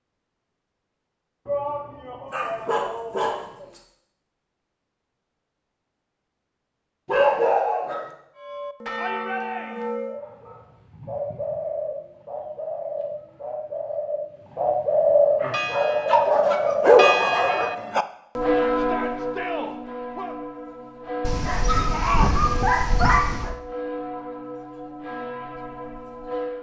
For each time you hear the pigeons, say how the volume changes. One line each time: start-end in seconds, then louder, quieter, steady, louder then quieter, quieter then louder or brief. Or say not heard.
10.1-17.9 louder.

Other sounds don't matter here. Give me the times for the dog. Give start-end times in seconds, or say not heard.
2.3-3.8, 7.0-8.1, 16.1-17.7, 21.2-23.6.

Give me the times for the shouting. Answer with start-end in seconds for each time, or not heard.
1.4-3.8, 8.9-9.9, 18.8-20.4.